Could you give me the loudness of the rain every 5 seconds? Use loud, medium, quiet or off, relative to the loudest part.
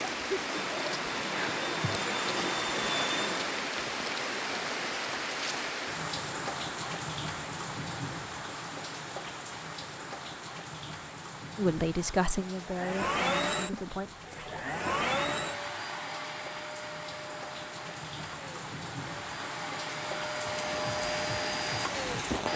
loud, loud, medium, medium, loud.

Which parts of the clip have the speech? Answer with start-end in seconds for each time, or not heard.
11.6-14.2.